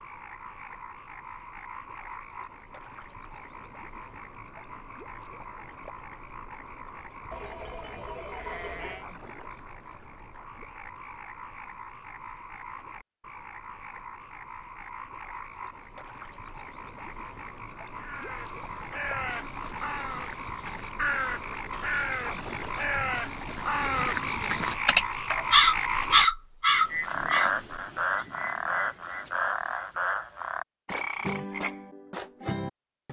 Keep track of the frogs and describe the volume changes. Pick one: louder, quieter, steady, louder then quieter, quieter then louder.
louder.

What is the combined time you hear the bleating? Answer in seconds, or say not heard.
2 s.